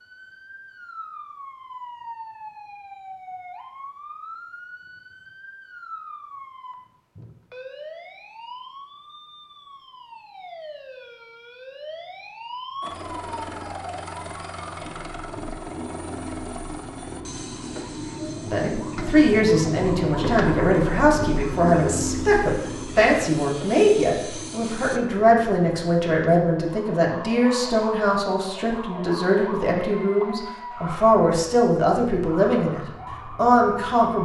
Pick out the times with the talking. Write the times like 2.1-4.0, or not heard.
18.4-34.2.